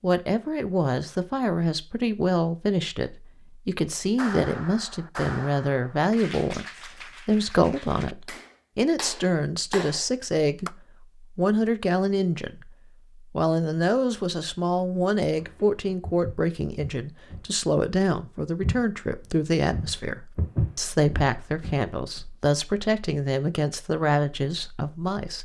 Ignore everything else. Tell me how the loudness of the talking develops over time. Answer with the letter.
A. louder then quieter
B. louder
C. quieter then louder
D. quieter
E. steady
E.